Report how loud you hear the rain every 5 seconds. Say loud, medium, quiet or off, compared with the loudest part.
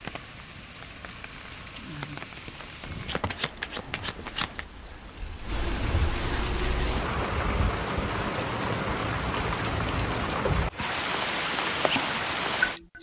quiet, loud, loud.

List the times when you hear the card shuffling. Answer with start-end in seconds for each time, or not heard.
3.0-4.7.